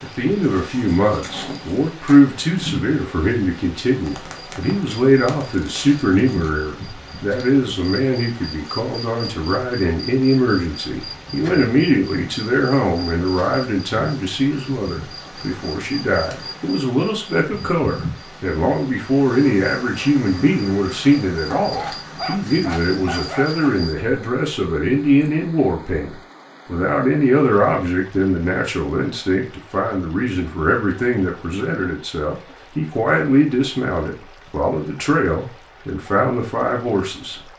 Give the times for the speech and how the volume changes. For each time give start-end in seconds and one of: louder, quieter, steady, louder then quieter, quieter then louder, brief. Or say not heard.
0.0-37.4 steady.